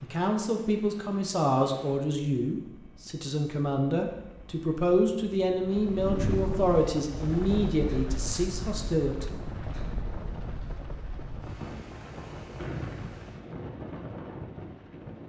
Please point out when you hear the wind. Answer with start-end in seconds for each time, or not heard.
5.8-15.2.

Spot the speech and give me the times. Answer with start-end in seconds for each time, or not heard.
0.0-9.2.